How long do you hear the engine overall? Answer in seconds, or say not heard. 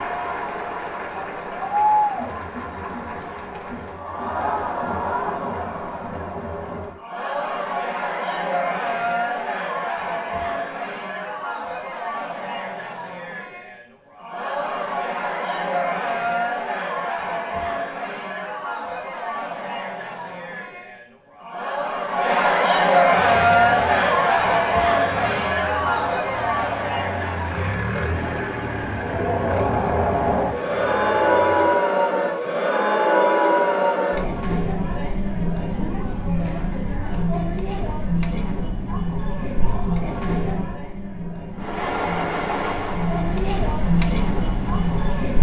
12 s.